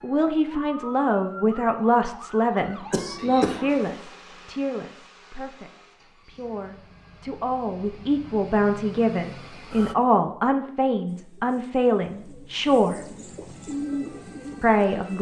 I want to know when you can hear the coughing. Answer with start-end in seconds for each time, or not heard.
2.9-3.6.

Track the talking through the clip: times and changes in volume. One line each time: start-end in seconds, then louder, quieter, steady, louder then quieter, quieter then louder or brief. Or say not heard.
0.0-13.0 quieter then louder
14.6-15.1 brief.